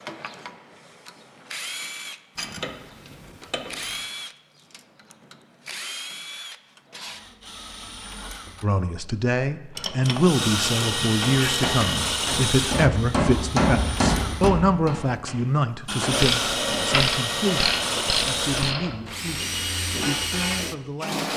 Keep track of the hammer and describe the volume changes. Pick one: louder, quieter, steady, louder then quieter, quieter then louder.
louder then quieter.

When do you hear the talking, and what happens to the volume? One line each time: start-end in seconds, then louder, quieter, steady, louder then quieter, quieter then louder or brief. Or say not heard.
8.6-21.3 quieter.